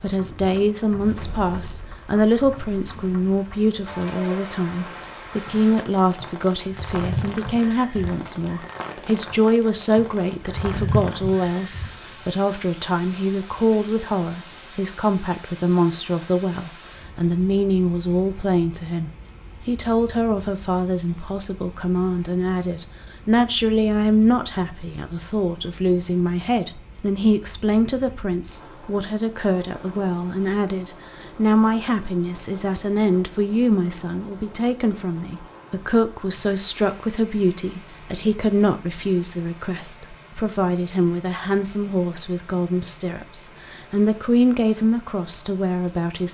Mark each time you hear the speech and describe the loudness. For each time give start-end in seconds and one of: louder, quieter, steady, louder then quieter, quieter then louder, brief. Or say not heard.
0.0-46.2 steady.